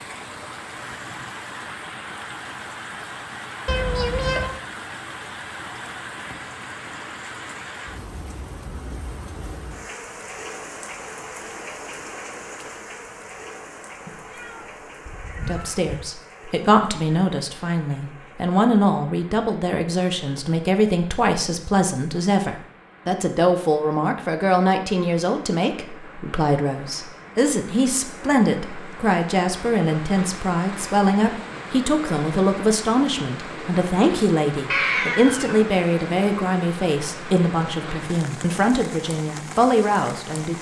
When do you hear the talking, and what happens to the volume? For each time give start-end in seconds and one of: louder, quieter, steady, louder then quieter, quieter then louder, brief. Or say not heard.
15.4-40.5 steady.